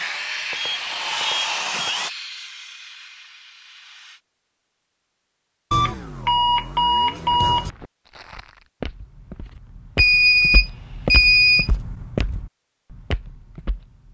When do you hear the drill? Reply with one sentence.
The drill can be heard from 0.0 to 2.1 s.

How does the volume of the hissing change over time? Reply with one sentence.
The volume of the hissing goes down.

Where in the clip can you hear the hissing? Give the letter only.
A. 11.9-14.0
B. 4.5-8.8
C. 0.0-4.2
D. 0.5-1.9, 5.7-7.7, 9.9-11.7
C.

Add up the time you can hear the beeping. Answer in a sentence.
You can hear the beeping for 5 seconds altogether.